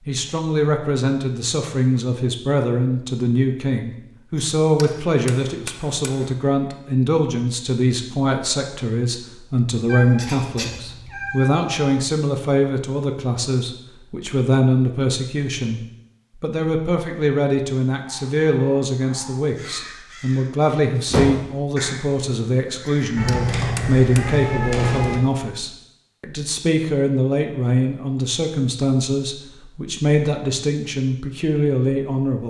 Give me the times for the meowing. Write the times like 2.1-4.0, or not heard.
9.8-11.9, 23.1-25.2.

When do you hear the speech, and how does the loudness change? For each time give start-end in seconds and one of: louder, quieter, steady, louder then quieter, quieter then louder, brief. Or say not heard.
0.1-15.8 steady
16.4-32.4 steady.